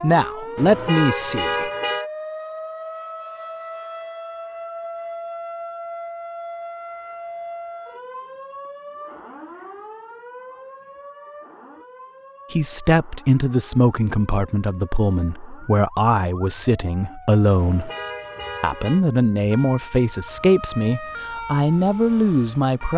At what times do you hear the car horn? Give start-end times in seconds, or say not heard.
0.6-2.1, 17.6-19.1.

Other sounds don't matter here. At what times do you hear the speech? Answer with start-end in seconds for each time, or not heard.
0.0-1.7, 12.5-17.9, 18.6-22.9.